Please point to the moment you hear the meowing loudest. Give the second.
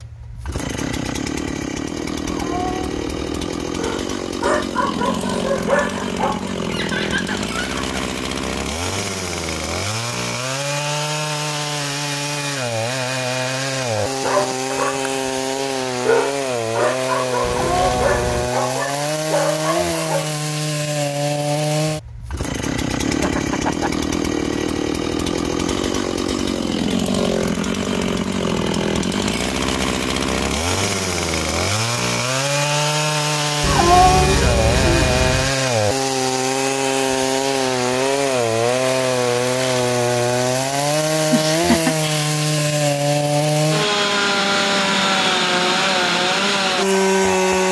34 s.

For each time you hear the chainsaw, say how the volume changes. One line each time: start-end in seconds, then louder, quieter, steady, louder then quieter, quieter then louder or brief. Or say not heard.
0.0-47.6 louder.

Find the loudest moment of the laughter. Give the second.
42 s.